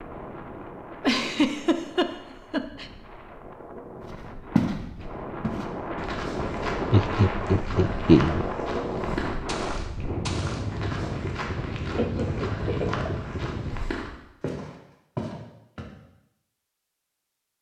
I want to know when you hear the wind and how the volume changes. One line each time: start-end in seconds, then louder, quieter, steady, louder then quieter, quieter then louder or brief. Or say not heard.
0.0-13.9 louder.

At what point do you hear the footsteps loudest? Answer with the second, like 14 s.
5 s.